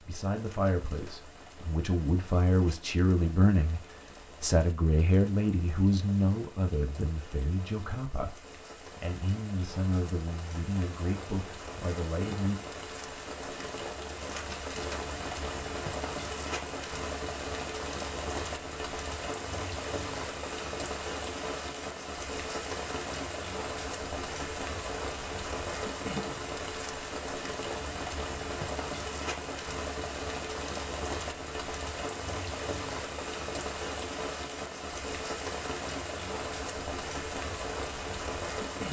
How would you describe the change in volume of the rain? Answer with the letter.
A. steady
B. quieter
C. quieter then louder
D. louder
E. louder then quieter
D.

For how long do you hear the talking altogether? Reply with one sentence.
The talking can be heard for 12 seconds in total.